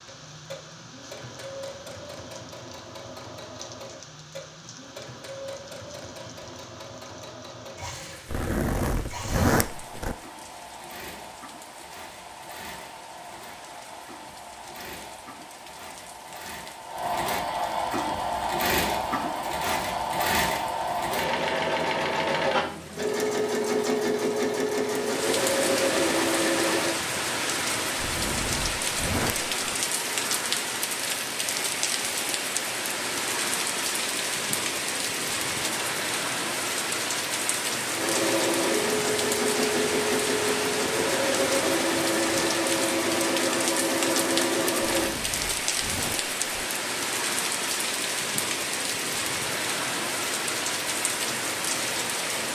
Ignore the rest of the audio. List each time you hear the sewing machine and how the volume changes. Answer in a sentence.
You can hear the sewing machine from 0.0 to 26.9 s, getting louder; and from 38.0 to 45.1 s, at a steady volume.